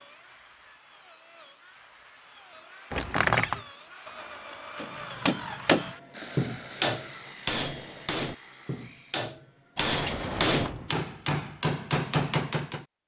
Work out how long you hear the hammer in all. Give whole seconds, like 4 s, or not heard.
8 s.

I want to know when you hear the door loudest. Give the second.
3 s.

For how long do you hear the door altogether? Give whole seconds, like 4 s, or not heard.
2 s.